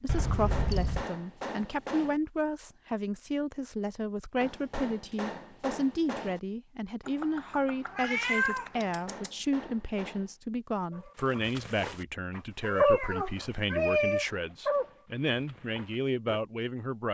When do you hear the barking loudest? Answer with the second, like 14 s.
13 s.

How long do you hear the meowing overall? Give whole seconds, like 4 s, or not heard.
5 s.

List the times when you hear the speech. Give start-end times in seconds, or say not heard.
0.0-17.0.